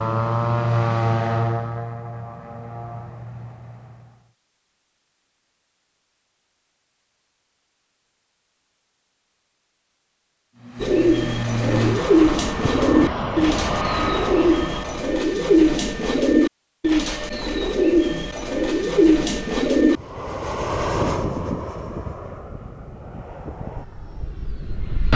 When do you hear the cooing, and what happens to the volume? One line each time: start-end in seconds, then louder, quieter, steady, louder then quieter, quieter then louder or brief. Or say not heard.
10.8-20.0 steady.